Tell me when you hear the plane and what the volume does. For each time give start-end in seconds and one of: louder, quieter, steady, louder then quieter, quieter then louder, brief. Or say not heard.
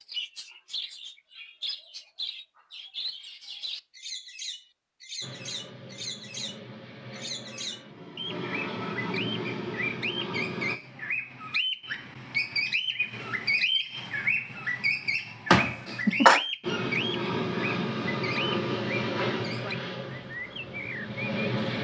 5.2-10.8 louder
16.6-21.7 quieter.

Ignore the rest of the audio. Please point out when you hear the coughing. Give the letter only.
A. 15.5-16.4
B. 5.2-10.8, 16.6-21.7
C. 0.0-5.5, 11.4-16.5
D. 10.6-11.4
A.